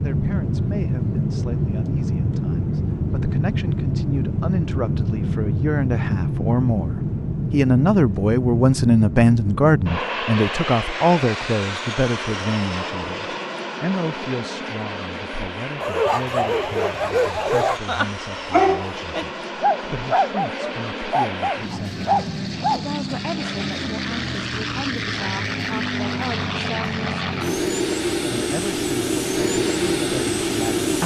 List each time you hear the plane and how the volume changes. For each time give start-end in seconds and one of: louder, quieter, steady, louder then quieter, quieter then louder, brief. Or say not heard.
0.0-31.0 quieter then louder.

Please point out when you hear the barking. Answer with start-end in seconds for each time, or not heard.
15.8-22.9.